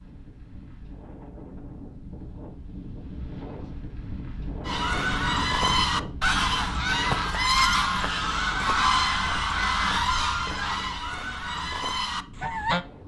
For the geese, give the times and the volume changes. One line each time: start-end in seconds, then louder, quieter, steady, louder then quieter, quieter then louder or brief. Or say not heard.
4.7-12.8 quieter.